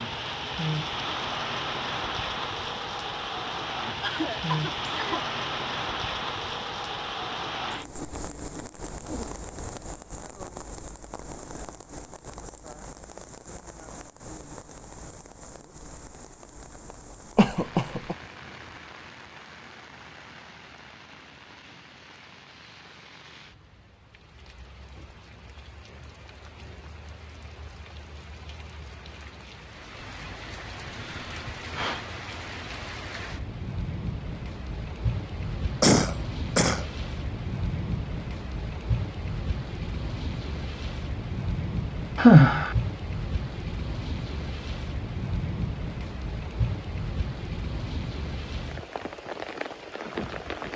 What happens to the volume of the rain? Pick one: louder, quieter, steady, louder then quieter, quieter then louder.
quieter then louder.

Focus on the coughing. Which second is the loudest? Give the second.
36 s.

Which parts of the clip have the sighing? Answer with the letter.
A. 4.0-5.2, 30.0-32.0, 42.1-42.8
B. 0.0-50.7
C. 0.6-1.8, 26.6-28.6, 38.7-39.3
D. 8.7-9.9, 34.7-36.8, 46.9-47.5
A.